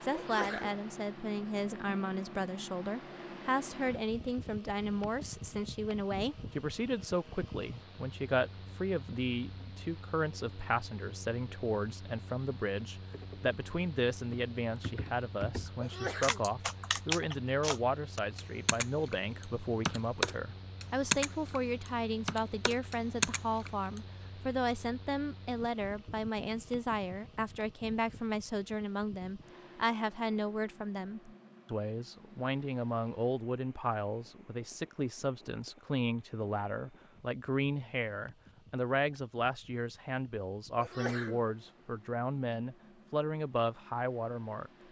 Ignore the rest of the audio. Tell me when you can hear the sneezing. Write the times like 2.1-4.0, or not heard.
0.1-0.8, 15.8-16.4, 40.8-41.5.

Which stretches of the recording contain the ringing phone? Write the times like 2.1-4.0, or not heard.
not heard.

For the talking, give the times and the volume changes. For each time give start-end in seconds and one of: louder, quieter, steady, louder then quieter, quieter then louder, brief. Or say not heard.
0.0-44.7 steady.